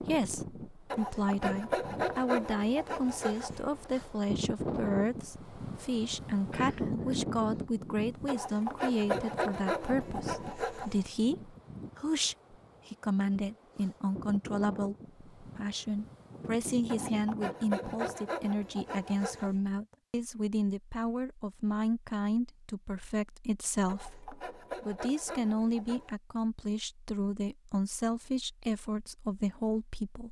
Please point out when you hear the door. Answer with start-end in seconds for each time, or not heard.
not heard.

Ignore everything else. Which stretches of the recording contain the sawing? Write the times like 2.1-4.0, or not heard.
0.9-3.9, 8.2-11.1, 16.9-19.6, 23.9-26.1.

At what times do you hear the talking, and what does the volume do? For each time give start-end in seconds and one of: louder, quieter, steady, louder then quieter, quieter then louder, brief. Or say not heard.
0.0-30.2 steady.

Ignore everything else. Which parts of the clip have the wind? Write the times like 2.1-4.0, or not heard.
0.0-18.3.